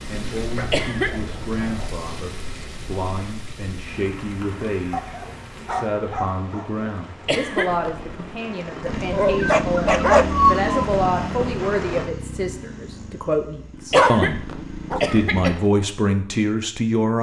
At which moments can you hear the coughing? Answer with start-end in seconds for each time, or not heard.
0.7-1.3, 7.2-8.1, 13.9-15.7.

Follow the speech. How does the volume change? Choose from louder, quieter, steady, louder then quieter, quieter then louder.
louder.